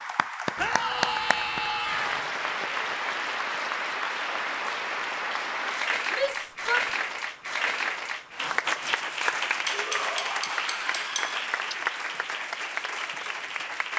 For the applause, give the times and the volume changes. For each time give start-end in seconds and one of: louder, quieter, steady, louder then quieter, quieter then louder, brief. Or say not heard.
0.0-13.9 steady.